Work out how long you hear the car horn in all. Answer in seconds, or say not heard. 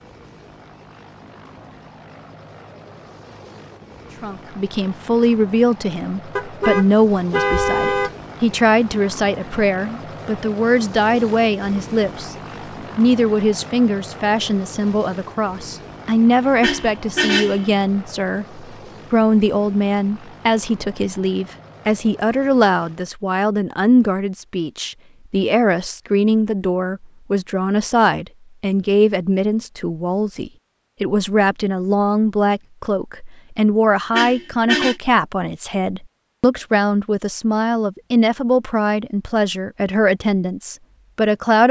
4 s.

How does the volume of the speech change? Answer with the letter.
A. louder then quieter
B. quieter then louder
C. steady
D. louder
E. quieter
C.